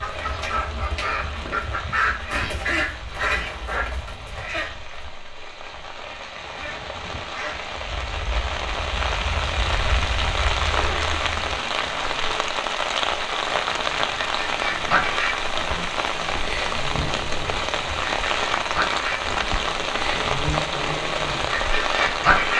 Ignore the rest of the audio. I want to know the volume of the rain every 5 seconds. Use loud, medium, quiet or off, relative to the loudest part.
quiet, medium, loud, loud, loud.